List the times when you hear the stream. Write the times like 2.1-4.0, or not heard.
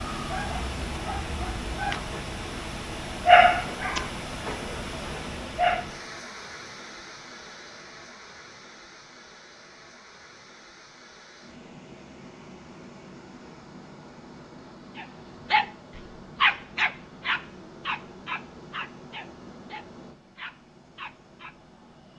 0.0-22.1.